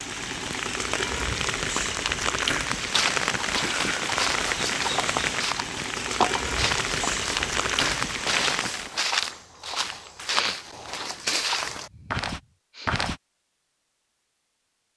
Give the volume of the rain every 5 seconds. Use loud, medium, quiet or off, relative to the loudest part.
loud, loud, off.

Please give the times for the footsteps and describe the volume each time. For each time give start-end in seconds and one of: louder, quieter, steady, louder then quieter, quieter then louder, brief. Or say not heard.
2.6-13.2 steady.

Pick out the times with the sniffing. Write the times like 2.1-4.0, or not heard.
10.2-12.9.